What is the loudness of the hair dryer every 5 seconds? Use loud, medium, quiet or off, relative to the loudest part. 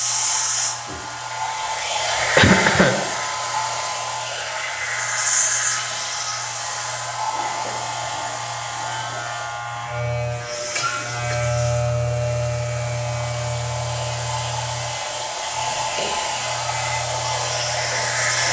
loud, loud, medium, loud.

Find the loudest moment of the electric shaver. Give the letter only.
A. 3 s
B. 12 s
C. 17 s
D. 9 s
B.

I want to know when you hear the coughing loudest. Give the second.
3 s.